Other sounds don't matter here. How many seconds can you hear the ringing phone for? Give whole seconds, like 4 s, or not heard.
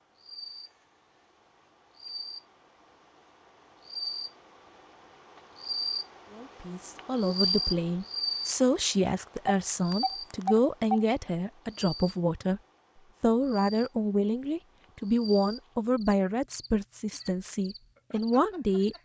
2 s.